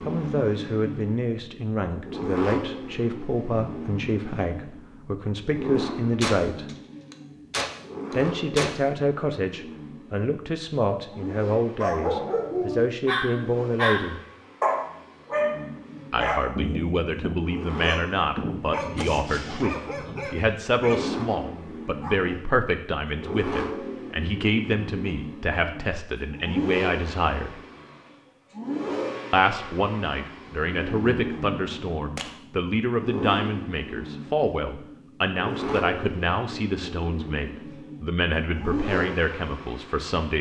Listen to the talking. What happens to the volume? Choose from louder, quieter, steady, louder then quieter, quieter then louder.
steady.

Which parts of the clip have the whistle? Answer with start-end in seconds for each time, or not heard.
not heard.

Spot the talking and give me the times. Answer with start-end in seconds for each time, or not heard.
0.0-6.7, 8.1-14.2, 16.1-27.6, 29.3-40.3.